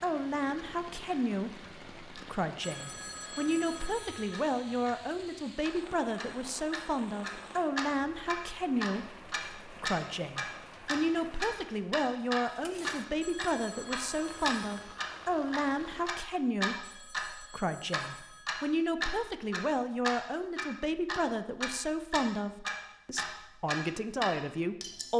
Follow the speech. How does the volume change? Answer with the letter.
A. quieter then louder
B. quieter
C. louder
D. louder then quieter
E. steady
E.